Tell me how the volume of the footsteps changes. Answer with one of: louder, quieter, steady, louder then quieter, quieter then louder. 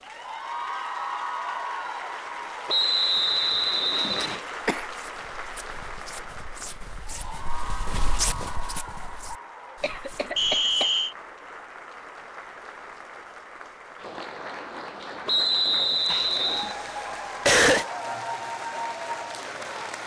louder then quieter.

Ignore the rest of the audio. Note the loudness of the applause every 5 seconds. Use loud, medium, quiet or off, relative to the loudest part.
loud, medium, medium, loud.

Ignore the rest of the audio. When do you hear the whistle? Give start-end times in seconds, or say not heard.
2.6-4.5, 10.3-11.2, 15.2-16.8.